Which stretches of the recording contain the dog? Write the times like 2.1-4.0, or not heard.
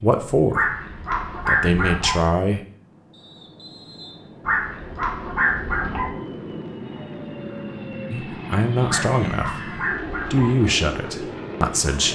0.5-2.2, 4.5-6.1, 8.8-10.6.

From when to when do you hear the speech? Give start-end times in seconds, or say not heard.
0.0-0.7, 1.4-2.6, 8.1-9.7, 10.3-12.1.